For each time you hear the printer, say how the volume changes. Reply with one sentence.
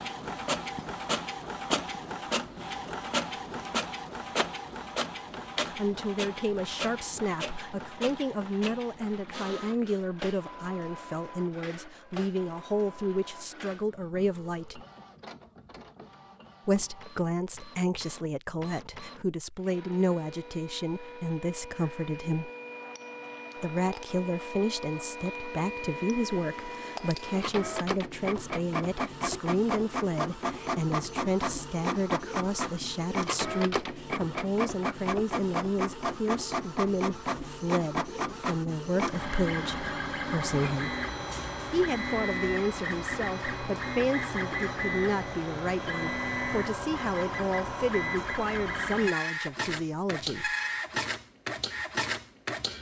You can hear the printer from 0.0 to 52.7 s, getting quieter then louder.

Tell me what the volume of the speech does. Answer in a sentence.
The loudness of the speech stays about the same.